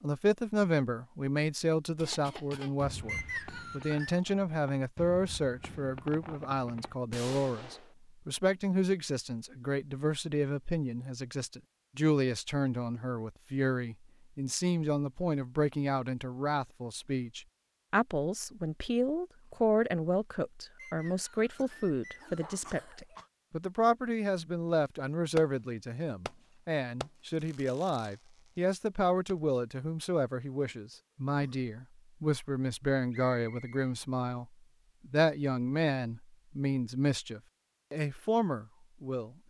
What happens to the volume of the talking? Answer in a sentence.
The volume of the talking stays about the same.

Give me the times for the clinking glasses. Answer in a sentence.
You can't hear the clinking glasses here.